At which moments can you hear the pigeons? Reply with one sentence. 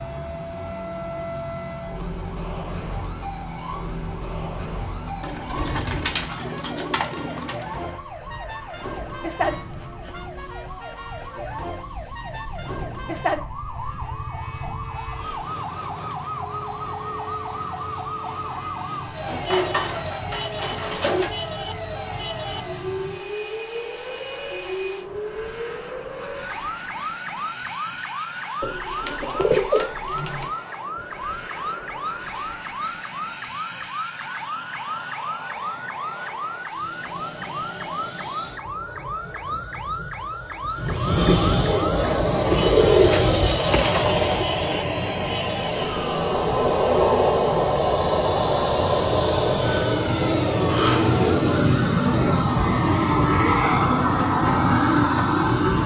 The pigeons can be heard from 5.2 to 7.7 s, from 19.2 to 21.3 s, from 28.6 to 30.5 s and from 42.5 to 44.5 s.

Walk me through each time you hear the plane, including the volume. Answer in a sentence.
The plane can be heard from 0.0 to 55.8 s, getting louder.